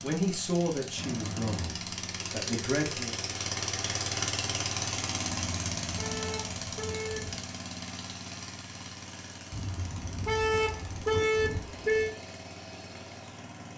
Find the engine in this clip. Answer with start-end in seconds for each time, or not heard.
0.0-13.7.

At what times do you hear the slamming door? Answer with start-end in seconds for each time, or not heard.
not heard.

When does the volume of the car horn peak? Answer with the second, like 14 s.
11 s.